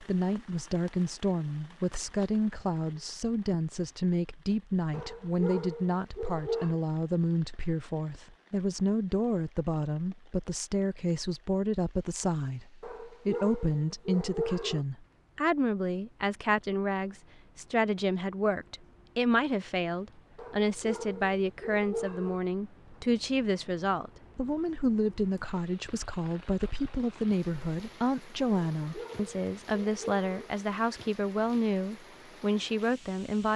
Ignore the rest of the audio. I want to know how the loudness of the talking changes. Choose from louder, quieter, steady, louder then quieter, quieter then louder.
steady.